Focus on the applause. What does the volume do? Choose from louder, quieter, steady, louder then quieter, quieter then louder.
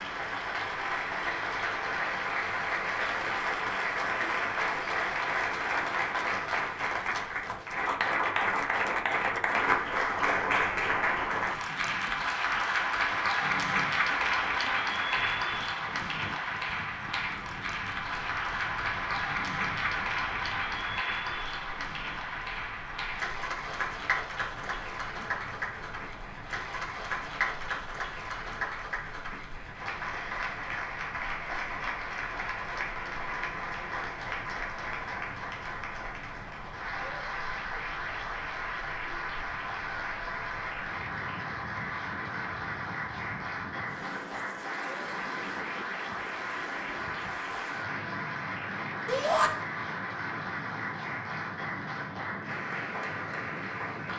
quieter.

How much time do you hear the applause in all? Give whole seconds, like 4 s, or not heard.
54 s.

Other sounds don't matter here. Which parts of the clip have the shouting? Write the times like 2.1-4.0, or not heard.
49.0-49.5.